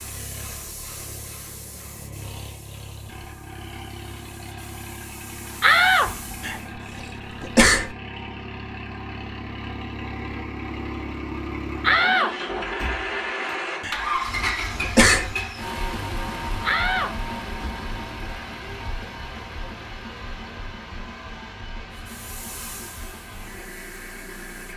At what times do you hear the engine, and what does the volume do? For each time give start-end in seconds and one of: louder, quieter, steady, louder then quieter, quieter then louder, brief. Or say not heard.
0.0-24.7 louder then quieter.